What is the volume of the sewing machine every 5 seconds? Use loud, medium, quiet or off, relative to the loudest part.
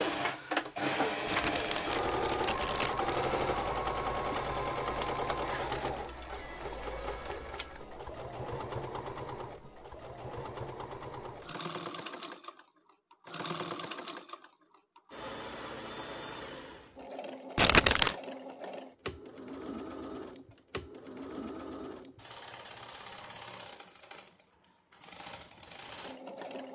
loud, medium, medium, medium, quiet, quiet.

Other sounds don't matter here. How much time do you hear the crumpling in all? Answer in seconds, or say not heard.
3 s.